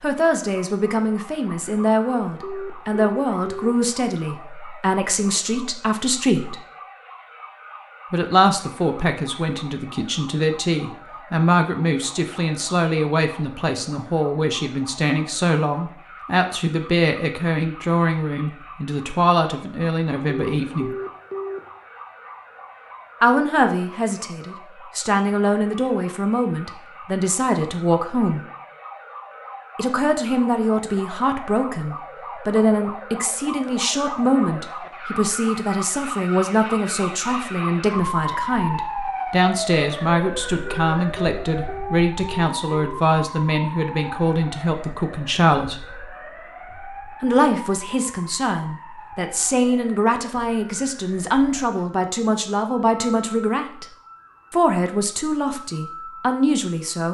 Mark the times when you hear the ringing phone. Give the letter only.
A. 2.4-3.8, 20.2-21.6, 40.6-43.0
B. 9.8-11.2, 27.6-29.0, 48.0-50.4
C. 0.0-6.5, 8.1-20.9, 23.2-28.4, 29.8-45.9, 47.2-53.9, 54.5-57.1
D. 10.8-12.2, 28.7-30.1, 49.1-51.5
A.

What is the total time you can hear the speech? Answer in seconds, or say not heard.
50 s.